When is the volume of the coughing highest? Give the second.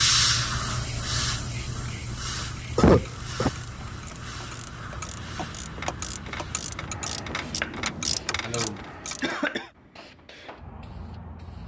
3 s.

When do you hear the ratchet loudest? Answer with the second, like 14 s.
8 s.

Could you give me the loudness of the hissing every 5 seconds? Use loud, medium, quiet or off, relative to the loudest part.
loud, medium, quiet.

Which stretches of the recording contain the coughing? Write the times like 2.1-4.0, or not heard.
2.8-3.5, 8.4-9.7.